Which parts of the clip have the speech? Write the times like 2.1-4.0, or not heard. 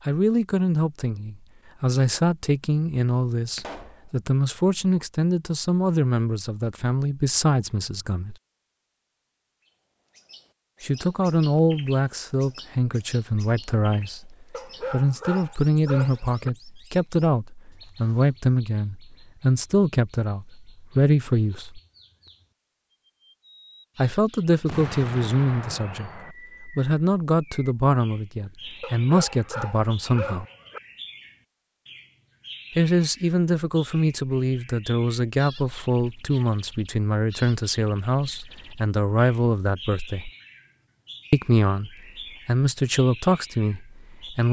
0.1-8.3, 10.8-21.8, 23.9-30.4, 32.8-40.3, 41.3-44.4.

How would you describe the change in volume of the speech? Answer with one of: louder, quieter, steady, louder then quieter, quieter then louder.
steady.